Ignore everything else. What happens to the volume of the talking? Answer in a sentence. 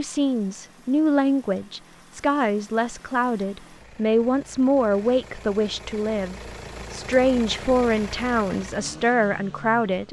The volume of the talking stays about the same.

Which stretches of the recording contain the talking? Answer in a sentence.
You can hear the talking from 0.0 to 10.0 s.